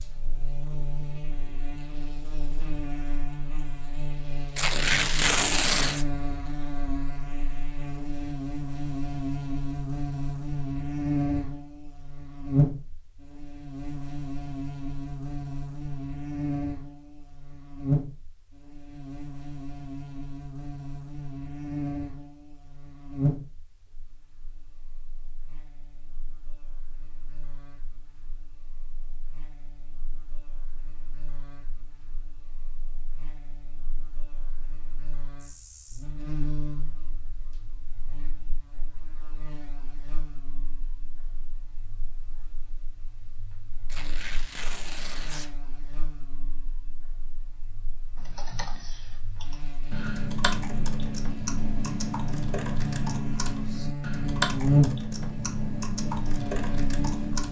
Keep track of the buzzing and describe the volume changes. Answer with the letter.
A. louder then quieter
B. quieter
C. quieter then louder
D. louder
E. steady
C.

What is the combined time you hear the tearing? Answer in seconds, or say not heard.
3 s.